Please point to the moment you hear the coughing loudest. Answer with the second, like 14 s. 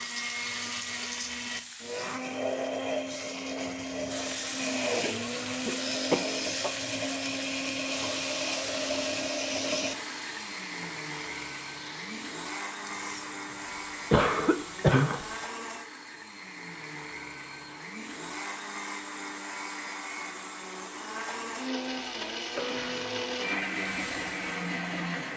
15 s.